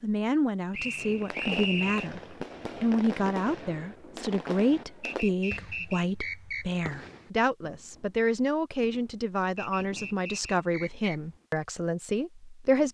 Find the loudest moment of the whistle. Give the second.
2 s.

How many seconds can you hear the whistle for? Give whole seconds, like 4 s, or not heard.
5 s.